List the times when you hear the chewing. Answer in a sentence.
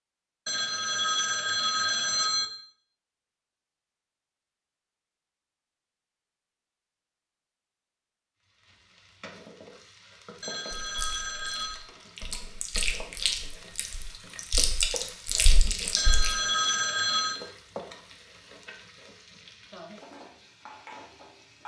You can hear the chewing from 10.8 to 16.4 s.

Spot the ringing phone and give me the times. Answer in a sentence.
You can hear the ringing phone from 0.5 to 2.5 s, from 10.4 to 11.8 s and from 15.9 to 17.4 s.